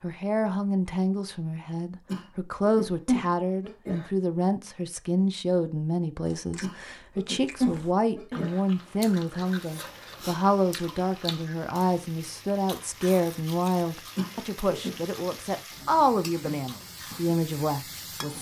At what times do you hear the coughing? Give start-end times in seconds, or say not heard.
2.0-4.1, 6.6-8.6, 14.2-14.9.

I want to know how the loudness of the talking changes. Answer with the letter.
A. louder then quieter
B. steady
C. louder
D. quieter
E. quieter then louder
B.